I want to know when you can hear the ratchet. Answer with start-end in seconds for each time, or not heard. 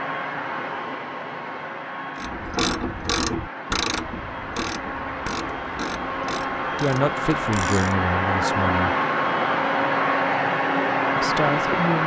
2.1-8.1.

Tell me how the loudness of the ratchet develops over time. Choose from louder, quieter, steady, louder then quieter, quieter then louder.
quieter.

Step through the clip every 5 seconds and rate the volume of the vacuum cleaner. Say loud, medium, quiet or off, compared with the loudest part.
medium, loud, loud.